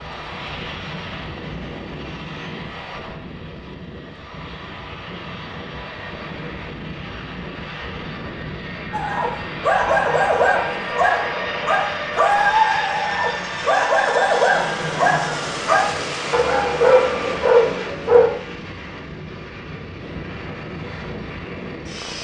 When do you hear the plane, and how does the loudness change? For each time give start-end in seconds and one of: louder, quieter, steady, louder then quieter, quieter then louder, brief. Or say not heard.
0.0-22.2 louder then quieter.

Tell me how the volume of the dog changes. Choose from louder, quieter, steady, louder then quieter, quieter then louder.
steady.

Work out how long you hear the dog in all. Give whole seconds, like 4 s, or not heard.
9 s.